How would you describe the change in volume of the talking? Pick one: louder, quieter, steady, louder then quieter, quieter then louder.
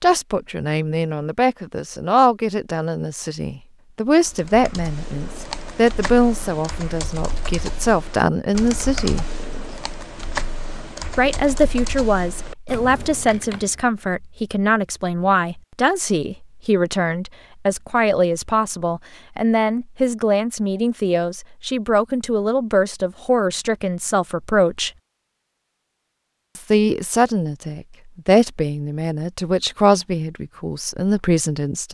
steady.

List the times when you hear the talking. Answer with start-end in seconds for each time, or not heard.
0.0-9.2, 11.1-24.9, 26.6-31.9.